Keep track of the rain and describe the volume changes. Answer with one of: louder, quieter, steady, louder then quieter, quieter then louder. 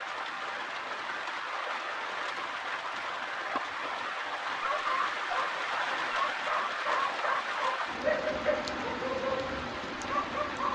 steady.